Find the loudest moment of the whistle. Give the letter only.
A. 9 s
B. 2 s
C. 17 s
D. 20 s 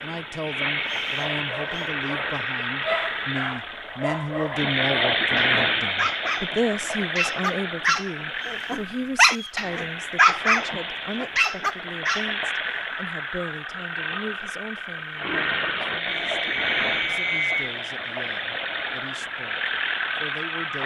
C.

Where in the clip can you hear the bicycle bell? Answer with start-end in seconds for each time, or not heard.
not heard.